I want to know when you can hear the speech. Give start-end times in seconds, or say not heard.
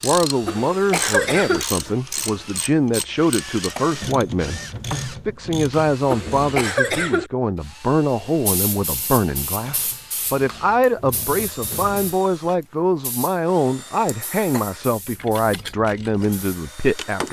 0.0-17.2.